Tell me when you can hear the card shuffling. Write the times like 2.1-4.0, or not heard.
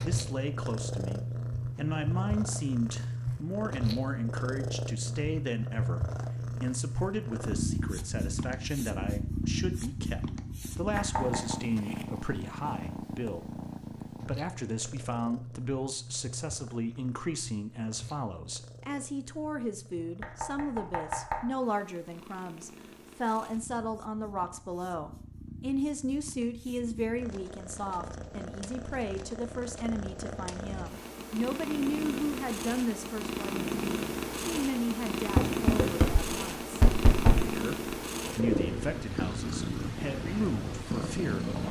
not heard.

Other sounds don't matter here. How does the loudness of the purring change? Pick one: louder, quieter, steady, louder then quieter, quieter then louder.
quieter then louder.